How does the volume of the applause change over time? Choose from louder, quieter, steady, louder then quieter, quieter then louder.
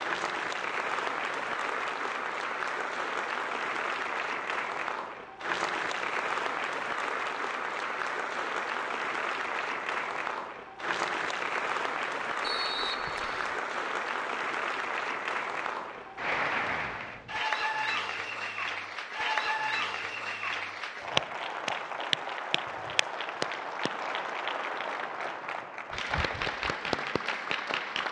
steady.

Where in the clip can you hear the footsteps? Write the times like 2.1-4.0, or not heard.
not heard.